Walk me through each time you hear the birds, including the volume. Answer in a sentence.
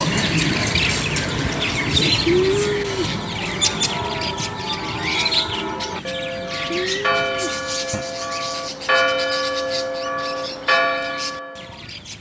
You can hear the birds from 0.0 to 12.1 s, getting quieter.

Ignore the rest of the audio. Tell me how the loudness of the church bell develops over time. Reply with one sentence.
The volume of the church bell goes up.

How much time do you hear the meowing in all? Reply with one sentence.
The meowing can be heard for 2 seconds in total.